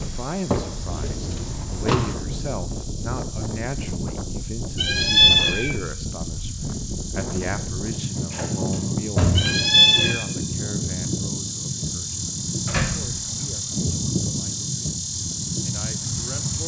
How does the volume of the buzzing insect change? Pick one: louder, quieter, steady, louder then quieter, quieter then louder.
louder.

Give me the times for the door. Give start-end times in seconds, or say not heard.
0.5-2.1, 8.3-9.6, 12.7-13.4.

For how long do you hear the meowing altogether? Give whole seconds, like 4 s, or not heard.
2 s.